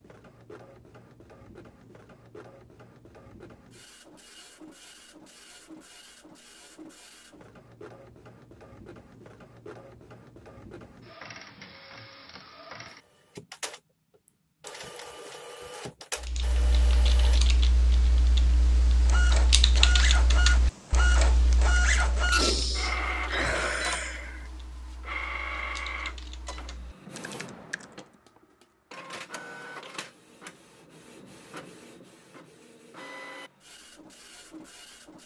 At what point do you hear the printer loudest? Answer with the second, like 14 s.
22 s.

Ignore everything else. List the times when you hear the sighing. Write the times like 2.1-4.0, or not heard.
22.4-24.4.